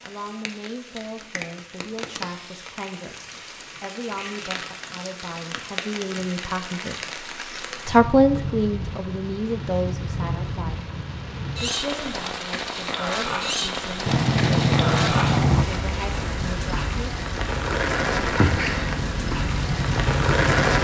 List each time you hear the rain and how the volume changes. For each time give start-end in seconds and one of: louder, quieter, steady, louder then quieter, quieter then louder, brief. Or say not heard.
0.0-20.7 louder.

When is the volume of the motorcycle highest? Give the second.
15 s.